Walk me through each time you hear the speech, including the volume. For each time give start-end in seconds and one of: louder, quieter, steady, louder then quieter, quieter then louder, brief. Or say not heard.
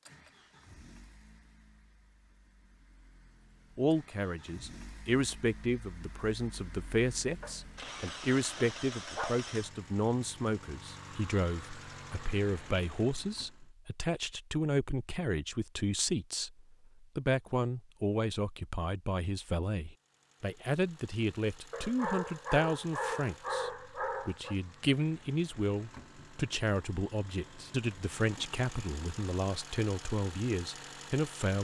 3.8-31.5 steady.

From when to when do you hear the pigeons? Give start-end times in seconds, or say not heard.
not heard.